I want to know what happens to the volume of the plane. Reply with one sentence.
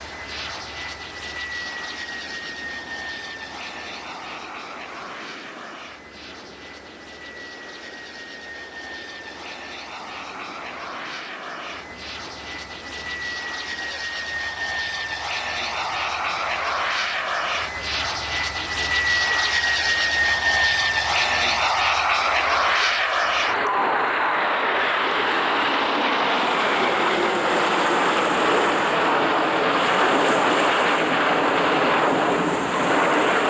The volume of the plane goes up.